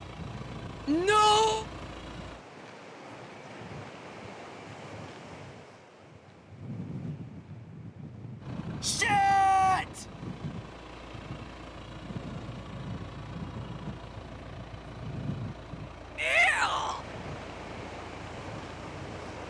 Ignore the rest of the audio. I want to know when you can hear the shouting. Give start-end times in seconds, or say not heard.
0.8-1.6, 8.8-10.1, 16.1-17.0.